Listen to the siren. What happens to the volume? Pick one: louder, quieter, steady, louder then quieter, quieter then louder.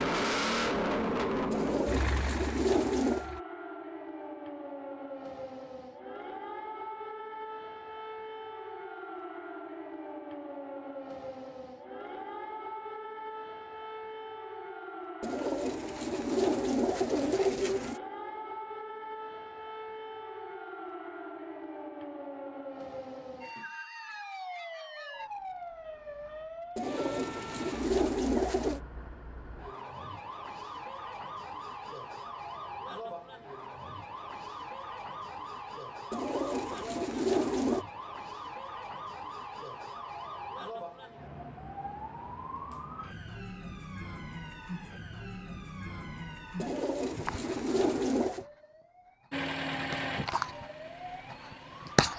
steady.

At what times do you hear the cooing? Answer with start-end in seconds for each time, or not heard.
1.5-3.2, 15.2-18.0, 26.8-28.8, 36.1-37.9, 46.5-48.5.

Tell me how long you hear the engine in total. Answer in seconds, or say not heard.
6 s.